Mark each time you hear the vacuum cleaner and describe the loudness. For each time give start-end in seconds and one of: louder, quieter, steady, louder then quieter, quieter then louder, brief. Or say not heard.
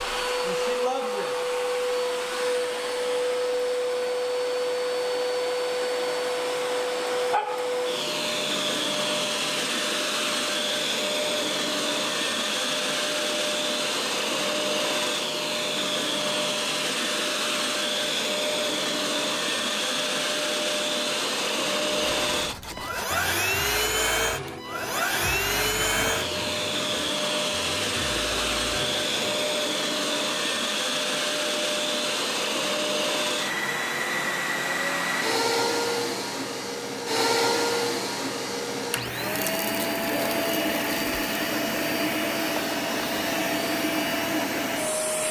0.0-45.2 steady.